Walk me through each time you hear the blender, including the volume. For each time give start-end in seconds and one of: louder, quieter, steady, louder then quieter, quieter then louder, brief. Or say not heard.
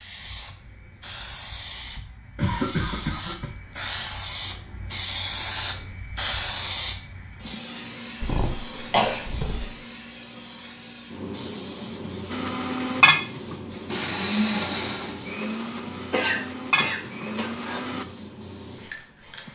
12.3-18.1 quieter then louder.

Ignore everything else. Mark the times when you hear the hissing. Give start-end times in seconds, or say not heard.
0.0-19.4.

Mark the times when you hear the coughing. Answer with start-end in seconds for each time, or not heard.
2.4-3.5, 8.2-9.7, 16.1-17.8.